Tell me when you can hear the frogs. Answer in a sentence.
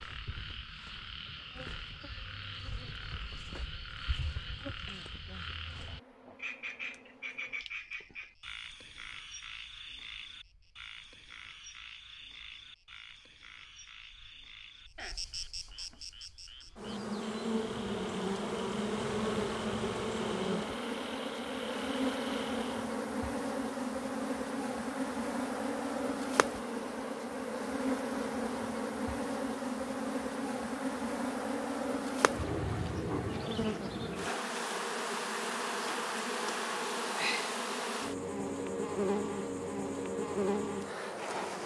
You can hear the frogs from 0.0 to 22.9 s.